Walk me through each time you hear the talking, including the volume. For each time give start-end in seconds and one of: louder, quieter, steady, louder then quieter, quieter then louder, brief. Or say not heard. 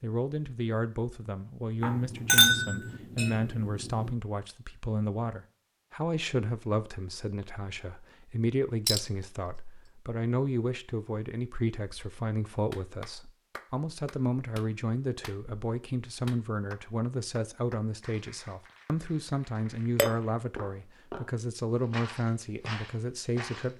0.0-23.7 steady.